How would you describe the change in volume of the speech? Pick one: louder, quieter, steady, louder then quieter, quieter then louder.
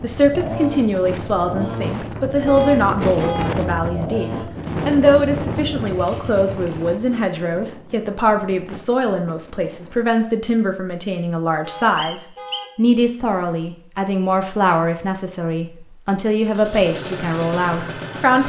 steady.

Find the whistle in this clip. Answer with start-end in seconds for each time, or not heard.
11.9-12.8.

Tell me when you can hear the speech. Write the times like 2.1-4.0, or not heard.
0.0-18.4.